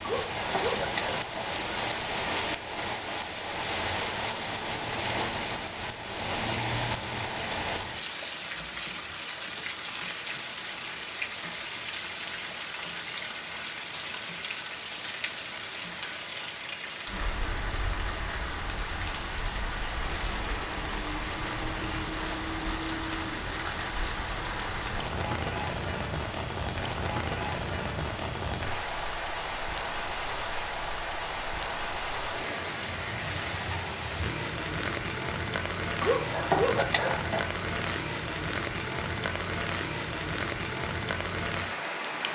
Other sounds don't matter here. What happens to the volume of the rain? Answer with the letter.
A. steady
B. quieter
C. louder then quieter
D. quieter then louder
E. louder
A.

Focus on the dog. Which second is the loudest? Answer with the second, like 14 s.
37 s.